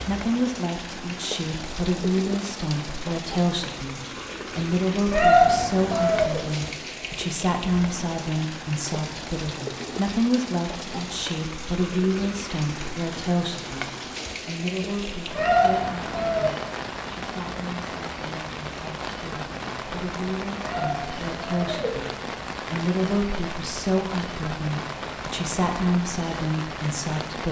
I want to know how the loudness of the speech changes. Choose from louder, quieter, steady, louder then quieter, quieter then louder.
quieter then louder.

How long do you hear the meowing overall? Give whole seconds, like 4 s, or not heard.
4 s.